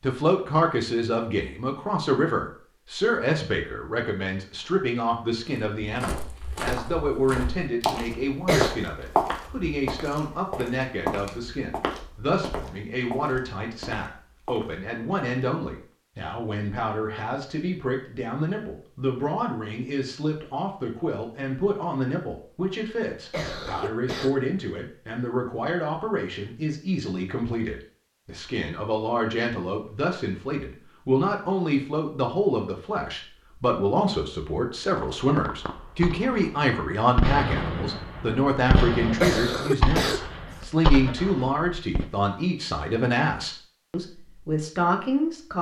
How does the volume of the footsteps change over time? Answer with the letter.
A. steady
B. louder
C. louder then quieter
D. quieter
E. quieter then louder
C.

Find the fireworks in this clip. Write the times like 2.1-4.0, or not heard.
35.0-42.0.